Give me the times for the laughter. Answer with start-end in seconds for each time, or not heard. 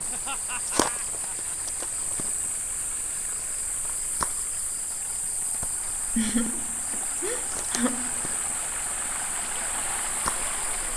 0.1-1.6, 6.2-8.2.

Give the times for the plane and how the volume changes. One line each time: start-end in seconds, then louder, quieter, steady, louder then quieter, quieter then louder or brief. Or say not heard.
not heard.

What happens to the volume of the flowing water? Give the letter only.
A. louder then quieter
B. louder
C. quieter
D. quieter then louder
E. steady
B.